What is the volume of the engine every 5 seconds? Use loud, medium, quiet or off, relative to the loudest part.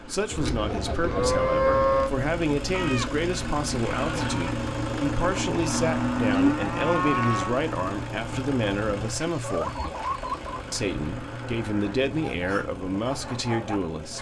loud, loud, medium.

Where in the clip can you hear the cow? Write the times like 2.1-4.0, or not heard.
0.3-2.1, 5.5-7.5, 9.9-11.9.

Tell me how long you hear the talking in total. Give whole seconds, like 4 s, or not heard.
13 s.